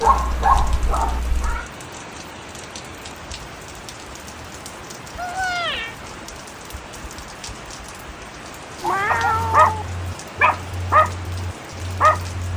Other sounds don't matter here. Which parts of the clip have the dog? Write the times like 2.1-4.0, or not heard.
0.0-1.2, 9.1-12.5.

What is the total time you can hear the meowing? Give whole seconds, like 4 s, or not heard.
3 s.